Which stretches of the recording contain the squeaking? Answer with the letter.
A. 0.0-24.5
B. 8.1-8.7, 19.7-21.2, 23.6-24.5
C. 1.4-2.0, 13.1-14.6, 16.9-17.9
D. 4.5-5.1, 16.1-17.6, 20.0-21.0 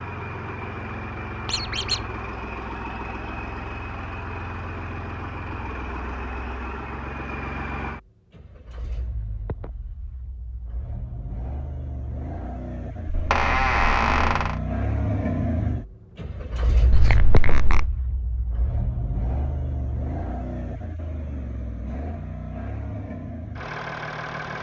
C.